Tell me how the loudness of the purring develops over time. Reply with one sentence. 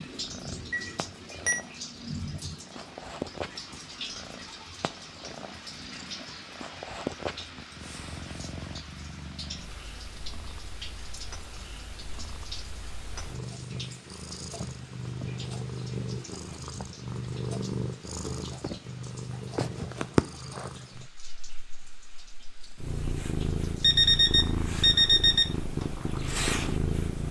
The volume of the purring goes up.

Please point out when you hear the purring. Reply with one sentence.
The purring can be heard from 0.1 to 27.2 s.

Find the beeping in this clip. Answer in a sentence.
You can hear the beeping from 0.7 to 1.6 s and from 23.8 to 25.5 s.